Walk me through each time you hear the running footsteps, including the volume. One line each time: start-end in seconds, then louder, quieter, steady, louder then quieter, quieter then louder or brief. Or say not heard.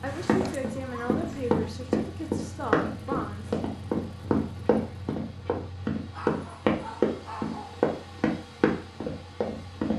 0.2-9.9 steady.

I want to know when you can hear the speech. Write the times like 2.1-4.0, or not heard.
0.0-3.5.